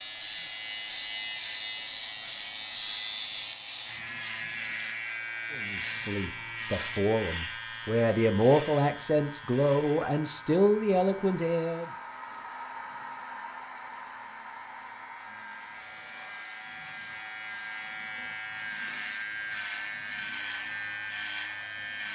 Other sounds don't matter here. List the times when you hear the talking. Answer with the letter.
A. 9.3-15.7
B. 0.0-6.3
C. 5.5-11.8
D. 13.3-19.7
C.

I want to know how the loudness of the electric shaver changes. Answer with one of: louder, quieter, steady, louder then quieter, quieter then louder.
quieter then louder.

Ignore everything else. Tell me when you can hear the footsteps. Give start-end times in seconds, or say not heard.
not heard.